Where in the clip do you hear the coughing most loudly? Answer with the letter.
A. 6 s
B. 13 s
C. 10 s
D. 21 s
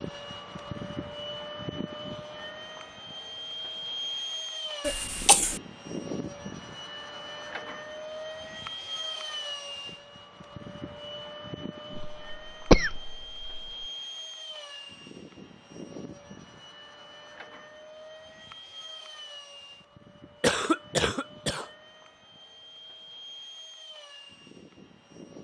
B.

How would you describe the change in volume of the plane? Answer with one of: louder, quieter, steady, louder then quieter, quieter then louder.
quieter.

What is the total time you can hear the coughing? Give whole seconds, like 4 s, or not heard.
4 s.